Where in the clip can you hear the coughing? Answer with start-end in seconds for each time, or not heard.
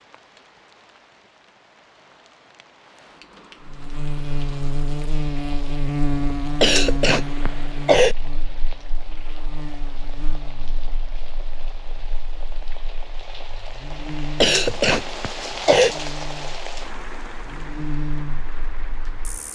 6.6-8.2, 14.4-15.9.